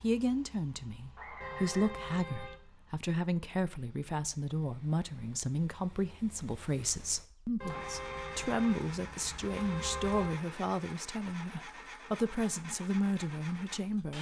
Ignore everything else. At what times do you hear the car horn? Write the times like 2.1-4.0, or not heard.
1.4-2.6, 7.6-10.4.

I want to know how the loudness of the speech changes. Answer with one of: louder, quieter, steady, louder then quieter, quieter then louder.
steady.